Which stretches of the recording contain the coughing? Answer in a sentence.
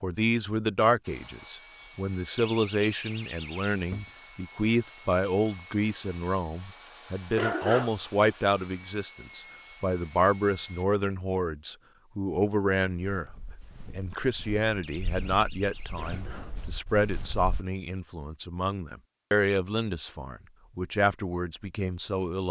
The coughing can be heard from 7.3 to 7.9 s and from 15.9 to 16.6 s.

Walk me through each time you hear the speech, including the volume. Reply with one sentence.
You can hear the speech from 0.0 to 22.4 s, at a steady volume.